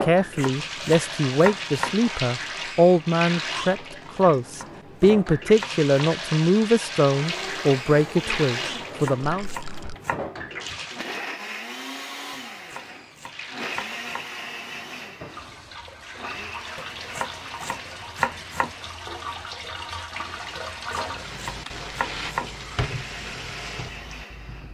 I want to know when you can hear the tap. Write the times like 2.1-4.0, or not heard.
0.0-11.2, 12.7-24.6.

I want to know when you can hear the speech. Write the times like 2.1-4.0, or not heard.
0.0-9.5.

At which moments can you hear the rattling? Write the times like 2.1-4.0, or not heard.
9.2-9.9, 21.6-22.4.